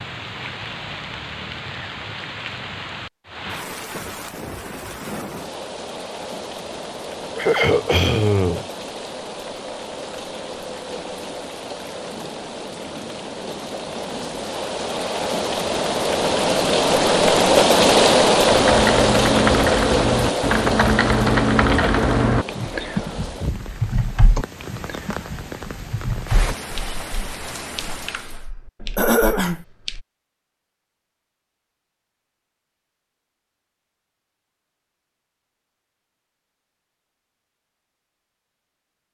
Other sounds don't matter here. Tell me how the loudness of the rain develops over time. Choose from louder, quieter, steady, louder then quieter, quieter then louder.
louder then quieter.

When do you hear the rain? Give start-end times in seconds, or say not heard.
0.0-28.5.